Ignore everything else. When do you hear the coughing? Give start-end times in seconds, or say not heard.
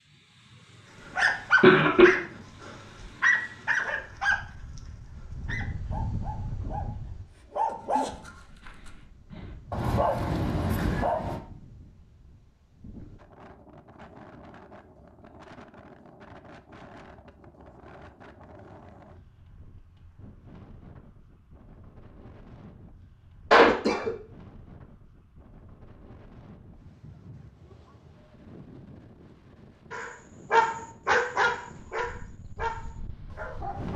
1.2-2.0, 23.5-24.1.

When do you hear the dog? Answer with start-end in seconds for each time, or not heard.
1.1-4.8, 5.4-11.4, 29.9-33.9.